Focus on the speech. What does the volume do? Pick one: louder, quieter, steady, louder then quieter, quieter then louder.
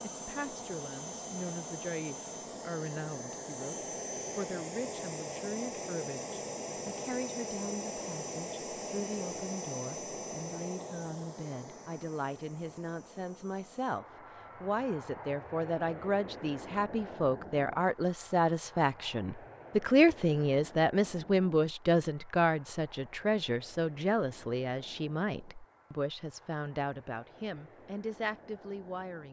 louder then quieter.